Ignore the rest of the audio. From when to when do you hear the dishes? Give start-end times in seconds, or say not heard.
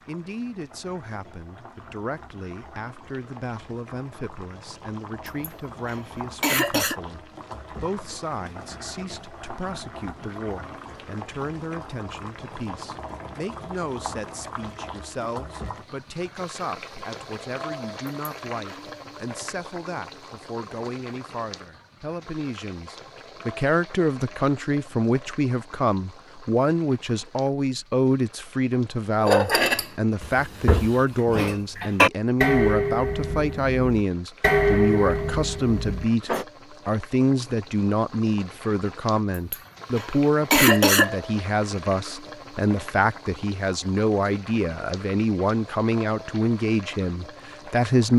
29.2-36.5.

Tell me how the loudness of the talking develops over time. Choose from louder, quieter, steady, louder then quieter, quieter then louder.
louder.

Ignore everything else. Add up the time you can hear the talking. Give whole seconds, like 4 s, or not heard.
48 s.